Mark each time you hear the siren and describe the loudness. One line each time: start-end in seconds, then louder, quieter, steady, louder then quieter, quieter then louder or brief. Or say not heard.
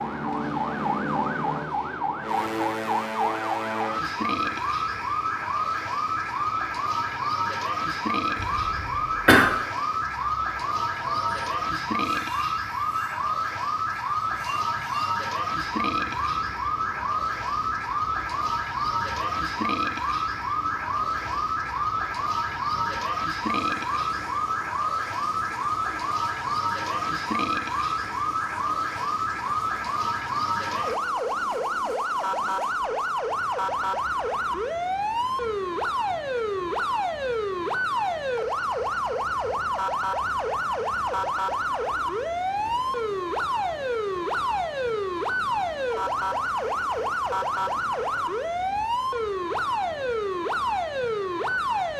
0.0-51.9 steady.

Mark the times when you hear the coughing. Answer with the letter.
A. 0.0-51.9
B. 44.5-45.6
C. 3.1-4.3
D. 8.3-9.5
D.